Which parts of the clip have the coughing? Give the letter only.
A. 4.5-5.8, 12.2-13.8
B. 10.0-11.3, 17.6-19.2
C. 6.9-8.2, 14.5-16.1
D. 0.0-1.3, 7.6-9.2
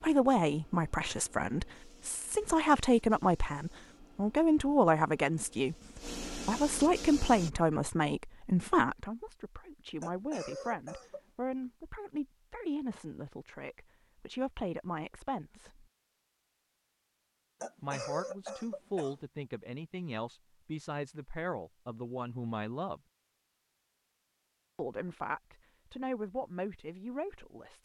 B.